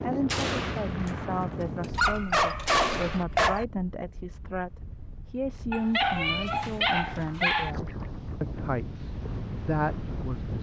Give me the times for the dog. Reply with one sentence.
You can hear the dog from 1.9 to 3.6 s and from 5.7 to 7.7 s.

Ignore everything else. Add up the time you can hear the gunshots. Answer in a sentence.
You can hear the gunshots for 3 seconds altogether.